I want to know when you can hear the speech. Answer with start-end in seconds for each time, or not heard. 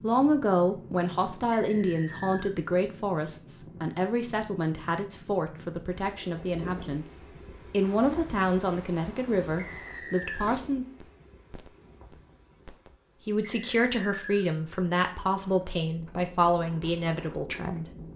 0.0-10.8, 13.2-17.9.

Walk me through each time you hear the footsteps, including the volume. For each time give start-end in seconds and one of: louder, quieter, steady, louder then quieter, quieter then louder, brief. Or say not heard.
not heard.